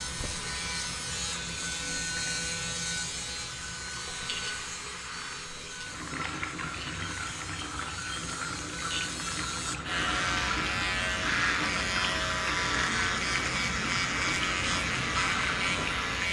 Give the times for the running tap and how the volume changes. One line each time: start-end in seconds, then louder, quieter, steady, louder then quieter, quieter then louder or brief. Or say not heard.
0.0-16.1 louder.